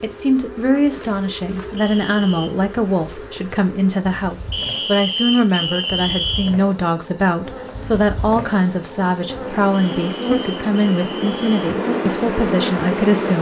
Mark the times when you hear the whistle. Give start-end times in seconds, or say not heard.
1.8-2.5, 4.5-6.5, 9.7-11.8.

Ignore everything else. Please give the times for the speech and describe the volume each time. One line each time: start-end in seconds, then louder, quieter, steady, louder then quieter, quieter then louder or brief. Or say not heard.
0.0-13.3 steady.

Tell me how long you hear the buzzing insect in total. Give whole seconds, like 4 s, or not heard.
13 s.